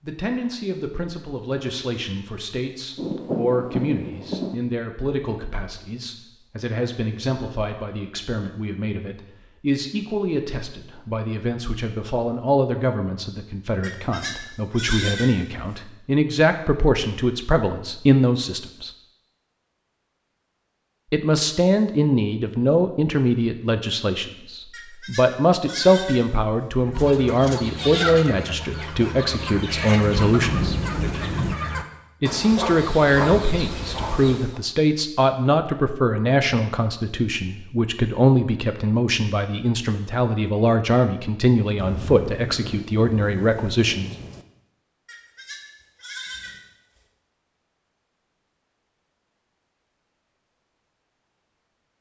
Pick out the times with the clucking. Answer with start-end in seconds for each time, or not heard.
26.8-34.6.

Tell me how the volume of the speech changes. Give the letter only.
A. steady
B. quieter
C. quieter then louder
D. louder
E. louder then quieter
D.